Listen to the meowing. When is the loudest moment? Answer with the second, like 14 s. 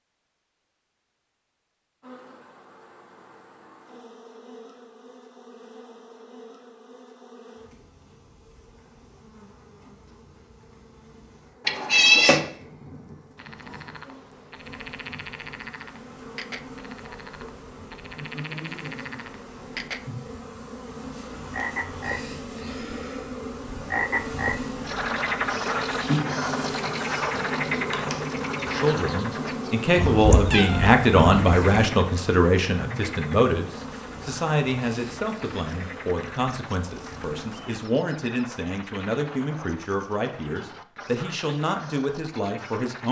12 s.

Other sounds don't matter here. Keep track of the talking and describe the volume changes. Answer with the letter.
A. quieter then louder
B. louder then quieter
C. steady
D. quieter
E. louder
D.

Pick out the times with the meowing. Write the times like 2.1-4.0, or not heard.
11.7-12.4, 29.9-31.9.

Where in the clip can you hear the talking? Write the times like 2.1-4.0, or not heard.
28.6-43.0.